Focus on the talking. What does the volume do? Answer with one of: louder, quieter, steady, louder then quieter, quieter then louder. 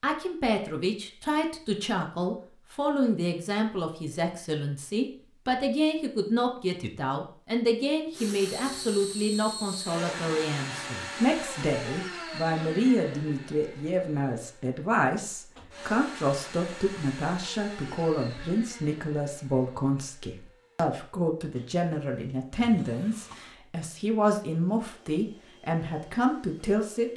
steady.